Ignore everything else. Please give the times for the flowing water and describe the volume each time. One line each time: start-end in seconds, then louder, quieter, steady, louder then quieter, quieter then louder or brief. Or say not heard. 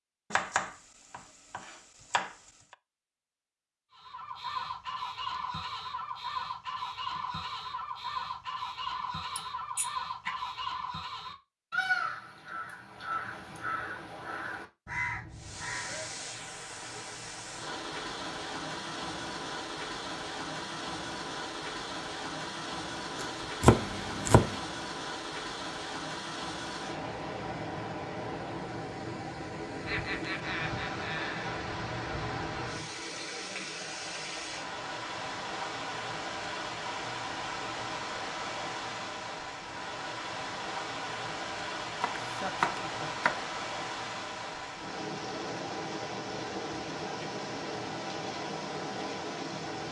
15.3-49.8 steady.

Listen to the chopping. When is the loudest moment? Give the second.
24 s.